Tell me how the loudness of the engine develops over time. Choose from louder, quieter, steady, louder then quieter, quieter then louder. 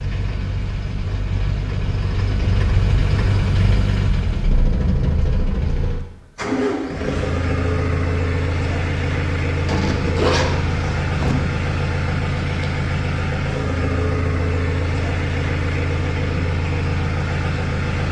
steady.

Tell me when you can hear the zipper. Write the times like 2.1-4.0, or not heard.
9.7-11.3.